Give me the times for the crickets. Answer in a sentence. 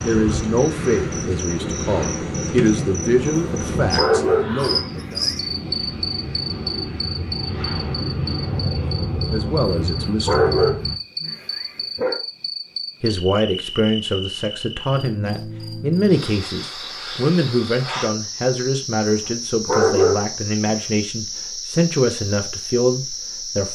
You can hear the crickets from 0.0 to 23.6 s.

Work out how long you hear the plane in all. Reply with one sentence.
The plane can be heard for 11 seconds in total.